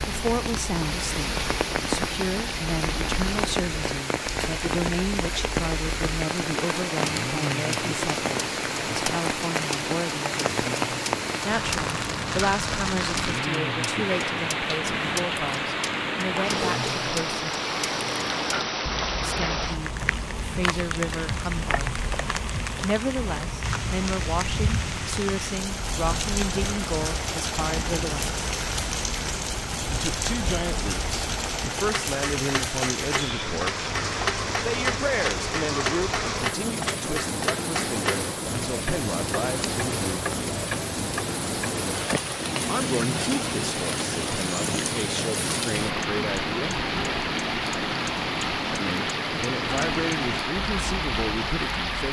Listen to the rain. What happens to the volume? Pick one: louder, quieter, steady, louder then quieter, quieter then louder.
steady.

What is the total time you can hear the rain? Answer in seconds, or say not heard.
52 s.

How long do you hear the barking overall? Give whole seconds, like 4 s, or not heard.
not heard.